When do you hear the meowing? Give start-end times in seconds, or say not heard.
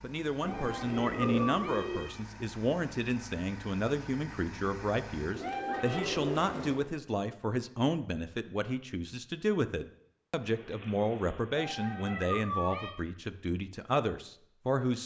0.4-2.2, 5.4-6.2, 11.5-12.9.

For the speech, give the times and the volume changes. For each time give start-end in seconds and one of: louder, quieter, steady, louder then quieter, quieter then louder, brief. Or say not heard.
0.0-15.0 steady.